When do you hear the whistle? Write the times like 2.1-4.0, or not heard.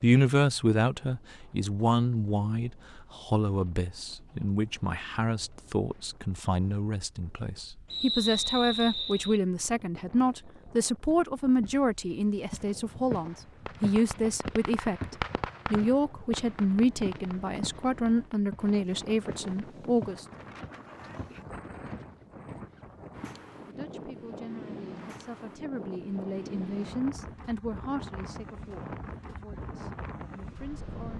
7.9-9.4.